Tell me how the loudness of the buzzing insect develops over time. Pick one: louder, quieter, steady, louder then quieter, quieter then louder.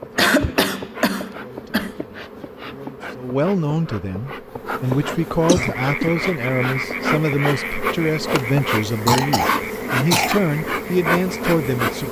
louder.